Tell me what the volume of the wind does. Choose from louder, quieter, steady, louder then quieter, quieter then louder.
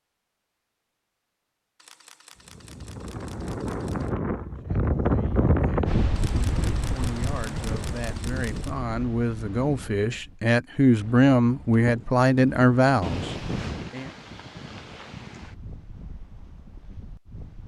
quieter.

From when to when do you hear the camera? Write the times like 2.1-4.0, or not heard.
1.8-4.1, 6.2-8.7, 13.0-13.9.